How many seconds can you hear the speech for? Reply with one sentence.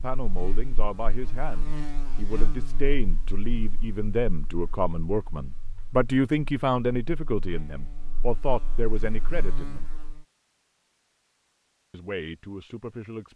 You can hear the speech for 11 seconds altogether.